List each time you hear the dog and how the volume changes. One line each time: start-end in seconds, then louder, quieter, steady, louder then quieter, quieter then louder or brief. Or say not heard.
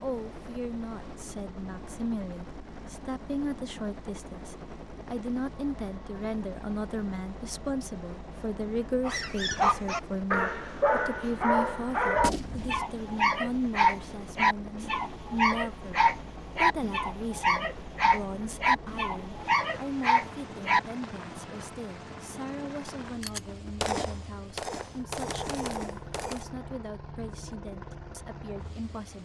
9.1-20.8 steady.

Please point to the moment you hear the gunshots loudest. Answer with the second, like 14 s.
24 s.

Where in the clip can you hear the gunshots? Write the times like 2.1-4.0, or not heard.
12.2-12.8, 23.2-26.4.